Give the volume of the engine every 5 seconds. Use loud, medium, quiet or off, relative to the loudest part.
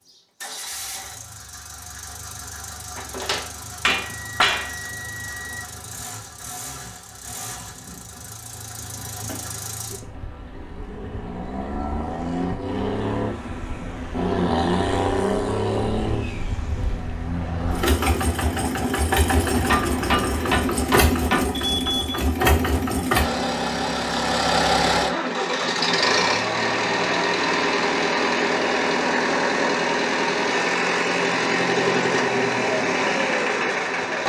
quiet, quiet, medium, loud, loud, loud, loud.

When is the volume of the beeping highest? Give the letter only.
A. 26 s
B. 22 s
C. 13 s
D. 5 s
B.